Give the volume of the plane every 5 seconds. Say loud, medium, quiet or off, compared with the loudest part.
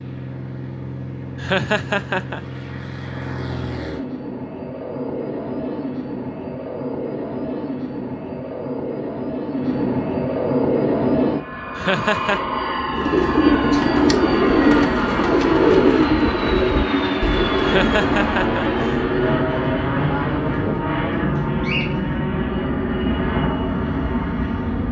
medium, medium, loud, loud, loud.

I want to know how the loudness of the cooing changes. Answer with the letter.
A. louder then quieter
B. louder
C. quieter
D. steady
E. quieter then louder
C.